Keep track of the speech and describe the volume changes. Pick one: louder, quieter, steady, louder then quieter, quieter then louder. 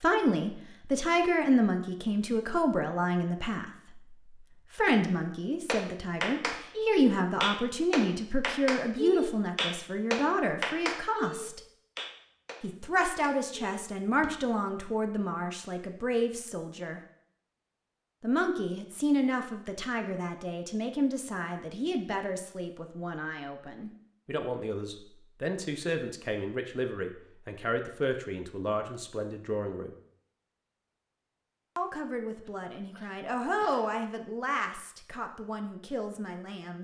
quieter.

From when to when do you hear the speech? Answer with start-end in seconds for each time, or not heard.
0.0-4.2, 4.8-11.6, 12.6-17.0, 18.2-29.9, 31.8-36.7.